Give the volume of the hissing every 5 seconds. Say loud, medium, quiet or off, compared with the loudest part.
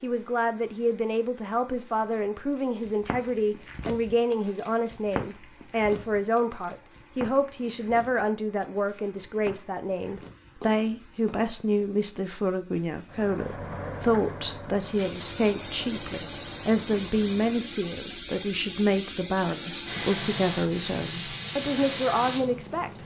quiet, quiet, quiet, medium, loud.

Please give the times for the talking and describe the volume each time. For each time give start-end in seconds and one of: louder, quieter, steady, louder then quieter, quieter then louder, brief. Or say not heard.
0.0-22.9 steady.